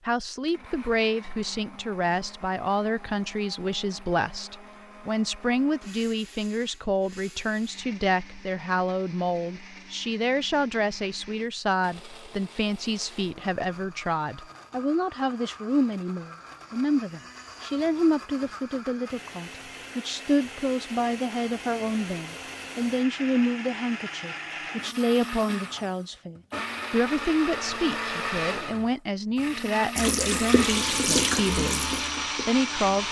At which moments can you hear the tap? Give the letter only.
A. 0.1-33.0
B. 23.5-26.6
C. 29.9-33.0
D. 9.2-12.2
C.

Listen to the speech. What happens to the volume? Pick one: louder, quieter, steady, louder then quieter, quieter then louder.
steady.